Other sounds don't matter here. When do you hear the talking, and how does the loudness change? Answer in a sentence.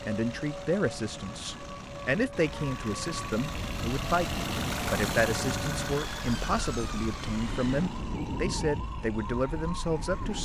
You can hear the talking from 0.0 to 10.4 s, at a steady volume.